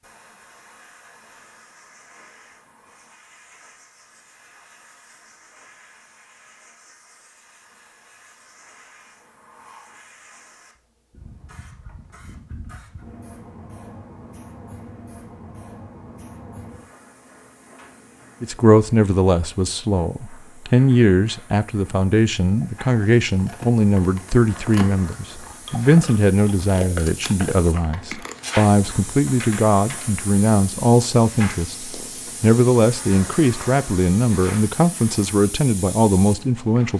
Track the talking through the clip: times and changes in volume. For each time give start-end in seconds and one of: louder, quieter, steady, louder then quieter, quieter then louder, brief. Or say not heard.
18.4-36.9 steady.